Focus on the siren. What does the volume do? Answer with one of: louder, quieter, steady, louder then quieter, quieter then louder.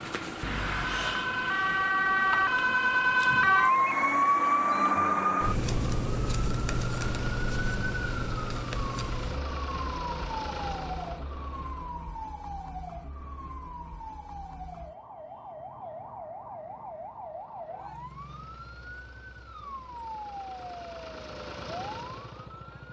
quieter.